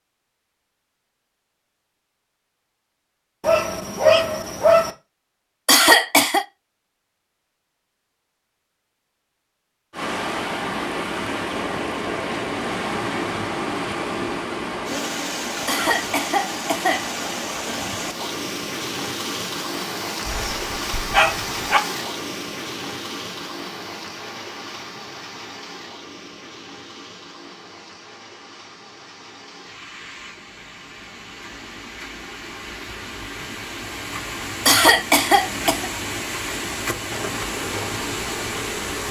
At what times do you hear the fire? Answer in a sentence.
You can't hear the fire here.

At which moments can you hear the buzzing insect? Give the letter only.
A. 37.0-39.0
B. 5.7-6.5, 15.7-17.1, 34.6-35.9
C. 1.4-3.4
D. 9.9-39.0
A.